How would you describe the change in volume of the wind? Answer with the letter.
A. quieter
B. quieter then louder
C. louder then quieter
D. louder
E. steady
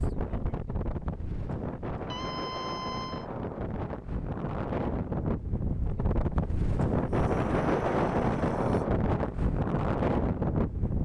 D.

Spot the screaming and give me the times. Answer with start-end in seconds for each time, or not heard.
2.1-3.2, 7.0-8.8.